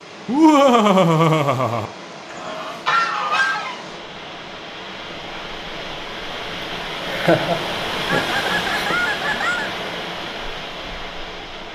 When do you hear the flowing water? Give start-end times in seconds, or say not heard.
0.0-11.6.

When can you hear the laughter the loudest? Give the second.
1 s.